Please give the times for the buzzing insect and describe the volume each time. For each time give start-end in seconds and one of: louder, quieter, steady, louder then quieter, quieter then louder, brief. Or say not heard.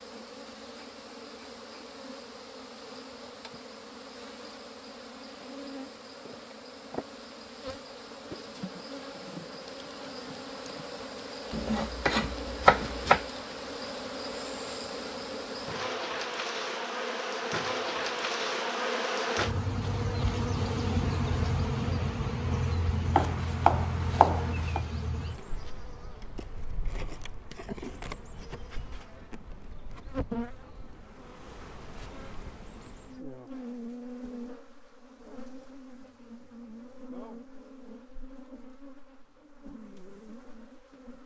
0.0-41.2 louder then quieter.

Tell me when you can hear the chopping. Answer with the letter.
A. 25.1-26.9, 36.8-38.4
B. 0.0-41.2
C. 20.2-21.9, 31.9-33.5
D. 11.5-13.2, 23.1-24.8
D.